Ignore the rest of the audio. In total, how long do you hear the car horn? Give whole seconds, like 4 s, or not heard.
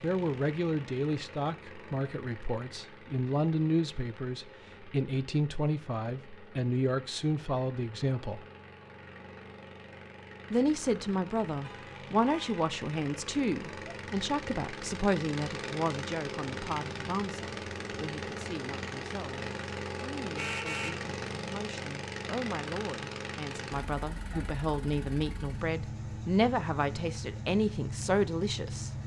2 s.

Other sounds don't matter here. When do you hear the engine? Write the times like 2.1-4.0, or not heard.
0.0-29.0.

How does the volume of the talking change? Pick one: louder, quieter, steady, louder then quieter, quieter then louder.
quieter then louder.